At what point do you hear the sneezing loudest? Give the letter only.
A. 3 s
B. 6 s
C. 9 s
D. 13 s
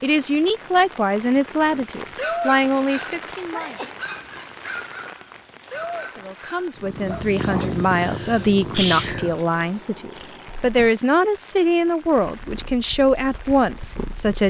C.